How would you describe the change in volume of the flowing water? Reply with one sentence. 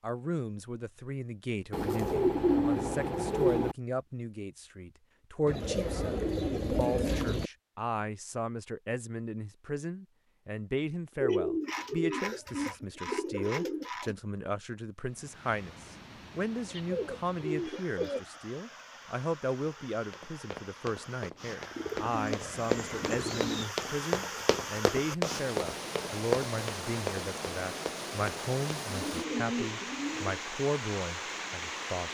The loudness of the flowing water goes up.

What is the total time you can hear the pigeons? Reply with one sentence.
The pigeons can be heard for 12 seconds in total.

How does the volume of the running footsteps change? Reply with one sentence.
The loudness of the running footsteps goes up.